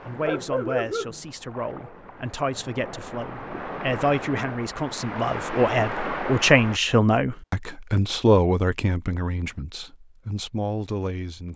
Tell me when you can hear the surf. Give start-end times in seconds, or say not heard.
0.0-6.8.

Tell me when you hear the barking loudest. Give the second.
1 s.